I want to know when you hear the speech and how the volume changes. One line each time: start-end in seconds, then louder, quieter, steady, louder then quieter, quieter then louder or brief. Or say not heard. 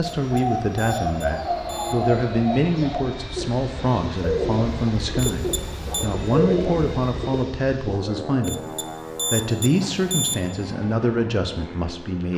0.0-12.3 steady.